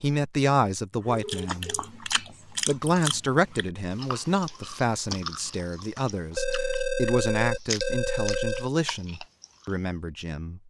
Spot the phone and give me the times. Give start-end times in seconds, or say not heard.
1.1-1.9, 6.3-8.7.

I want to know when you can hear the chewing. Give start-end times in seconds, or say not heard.
1.2-9.8.